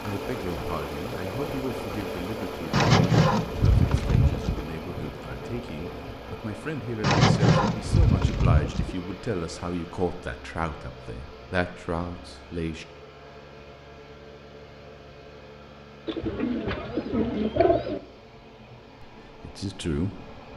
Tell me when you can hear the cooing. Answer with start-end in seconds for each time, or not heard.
2.7-4.7, 7.0-8.9, 16.1-18.0.